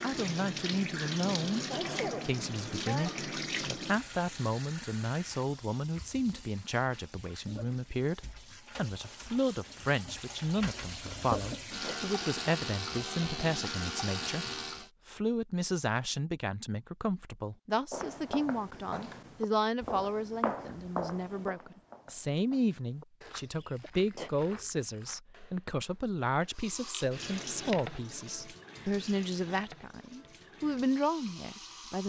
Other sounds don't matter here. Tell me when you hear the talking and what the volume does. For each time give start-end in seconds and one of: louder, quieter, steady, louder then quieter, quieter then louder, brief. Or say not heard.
0.0-1.6 brief
2.2-14.4 steady
15.1-32.0 steady.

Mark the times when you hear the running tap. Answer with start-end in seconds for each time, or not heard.
0.0-14.9, 26.5-32.0.